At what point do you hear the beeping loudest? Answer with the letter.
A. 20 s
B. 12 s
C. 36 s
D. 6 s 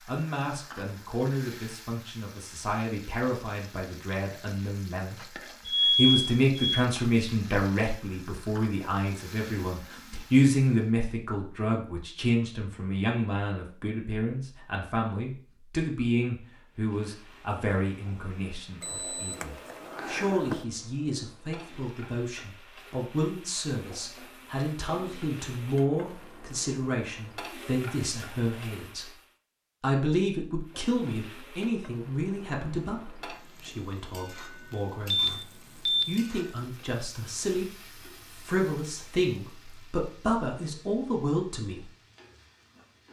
D.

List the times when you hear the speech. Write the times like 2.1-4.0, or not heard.
0.1-5.2, 5.8-29.1, 29.8-35.4, 36.0-37.7, 38.3-41.9.